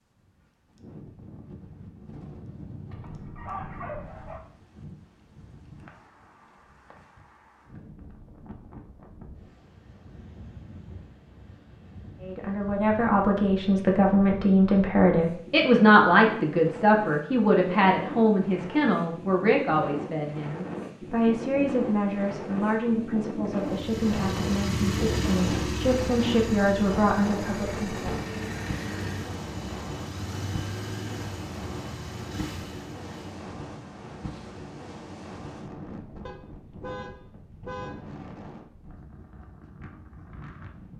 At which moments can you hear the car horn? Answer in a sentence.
You can hear the car horn from 36.2 to 38.0 s.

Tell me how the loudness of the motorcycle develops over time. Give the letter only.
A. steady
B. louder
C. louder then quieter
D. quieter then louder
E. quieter
E.